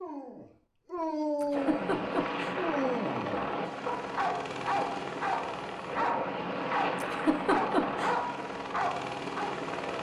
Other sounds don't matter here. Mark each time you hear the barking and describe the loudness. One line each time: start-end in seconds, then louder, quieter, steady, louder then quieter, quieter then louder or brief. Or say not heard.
0.0-9.6 steady.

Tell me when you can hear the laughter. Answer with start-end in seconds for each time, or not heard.
1.4-2.5, 7.0-8.2.